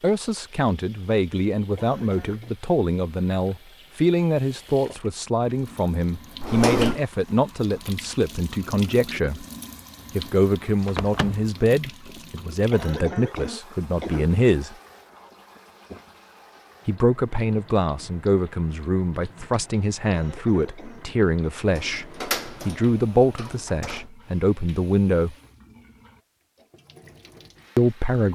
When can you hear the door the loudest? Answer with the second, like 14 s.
7 s.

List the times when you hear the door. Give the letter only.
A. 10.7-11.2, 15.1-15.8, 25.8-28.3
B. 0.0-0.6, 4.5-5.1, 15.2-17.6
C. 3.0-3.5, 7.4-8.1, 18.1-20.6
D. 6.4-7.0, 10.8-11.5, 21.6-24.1
D.